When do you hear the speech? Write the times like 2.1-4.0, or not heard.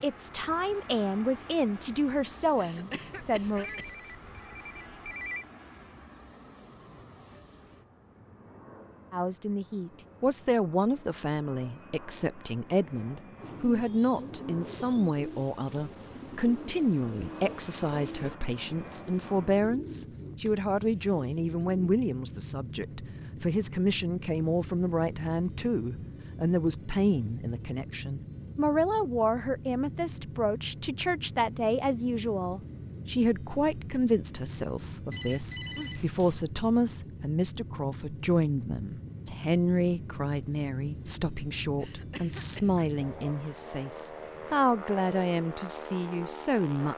0.0-3.6, 9.1-46.9.